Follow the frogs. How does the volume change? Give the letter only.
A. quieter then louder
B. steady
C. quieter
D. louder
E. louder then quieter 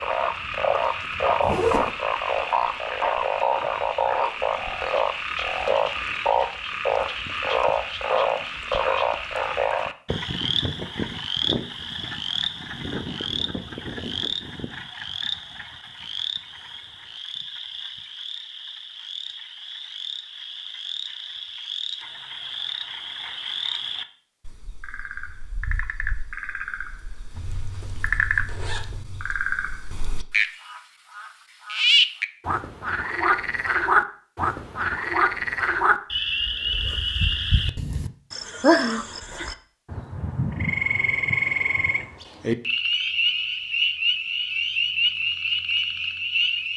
A.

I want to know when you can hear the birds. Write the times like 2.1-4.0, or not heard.
not heard.